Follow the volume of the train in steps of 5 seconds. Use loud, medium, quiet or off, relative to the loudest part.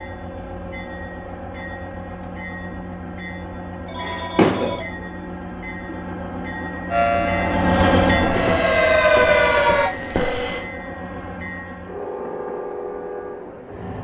medium, loud, medium.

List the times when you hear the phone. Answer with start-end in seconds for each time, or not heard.
3.9-4.8, 8.2-10.6.